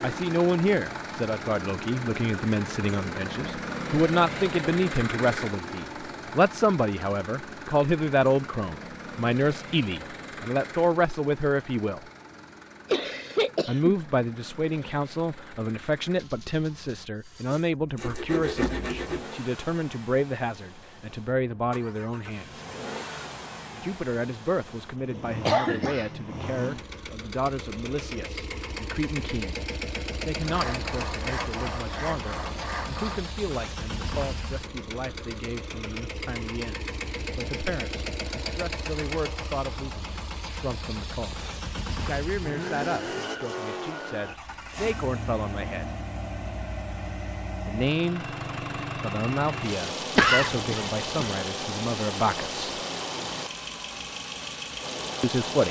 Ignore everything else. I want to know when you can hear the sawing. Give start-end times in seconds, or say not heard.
17.5-19.3, 30.4-33.4.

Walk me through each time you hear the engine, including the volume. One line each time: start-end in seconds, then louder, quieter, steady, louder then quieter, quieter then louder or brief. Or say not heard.
0.0-55.6 quieter then louder.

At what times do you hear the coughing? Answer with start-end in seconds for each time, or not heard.
12.9-13.9, 25.4-26.1, 50.1-51.3.